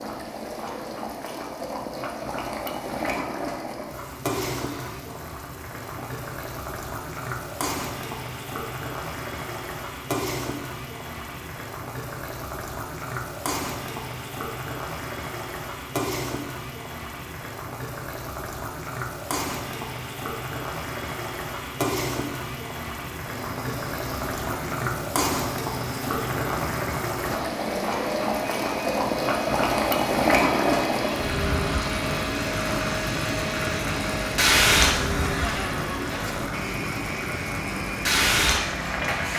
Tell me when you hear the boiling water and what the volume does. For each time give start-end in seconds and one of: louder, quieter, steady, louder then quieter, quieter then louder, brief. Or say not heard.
0.0-39.3 louder.